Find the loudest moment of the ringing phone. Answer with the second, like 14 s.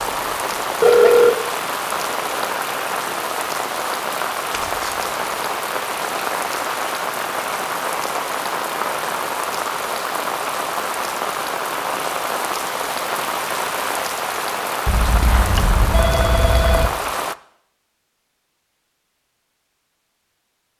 1 s.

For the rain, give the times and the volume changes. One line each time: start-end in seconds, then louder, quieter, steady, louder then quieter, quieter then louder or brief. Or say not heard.
0.0-17.4 steady.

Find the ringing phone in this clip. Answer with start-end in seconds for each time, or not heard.
0.8-1.3, 14.8-16.9.